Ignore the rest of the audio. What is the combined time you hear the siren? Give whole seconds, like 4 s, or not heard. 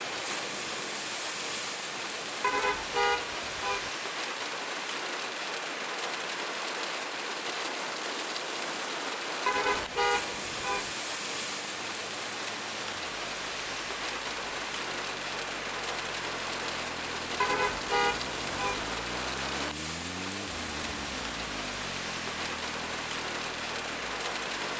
not heard.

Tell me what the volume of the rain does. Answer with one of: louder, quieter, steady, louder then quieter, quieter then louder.
steady.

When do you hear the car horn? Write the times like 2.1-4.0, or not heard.
2.4-3.9, 9.4-10.9, 17.4-18.9.